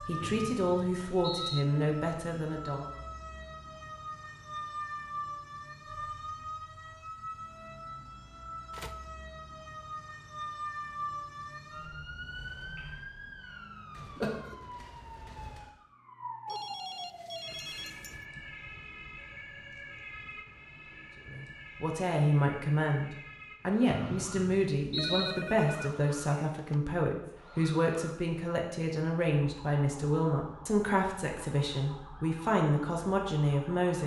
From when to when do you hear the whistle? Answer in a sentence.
The whistle can be heard from 0.2 to 1.6 s and from 23.9 to 25.4 s.